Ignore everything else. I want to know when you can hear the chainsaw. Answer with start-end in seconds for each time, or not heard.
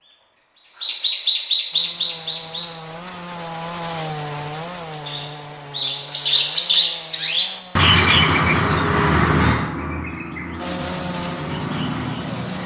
1.7-8.0, 10.6-12.6.